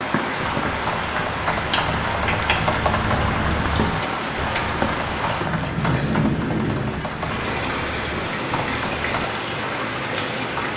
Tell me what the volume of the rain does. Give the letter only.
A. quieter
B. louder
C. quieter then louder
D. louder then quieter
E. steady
E.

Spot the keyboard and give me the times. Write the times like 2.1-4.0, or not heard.
0.6-9.3.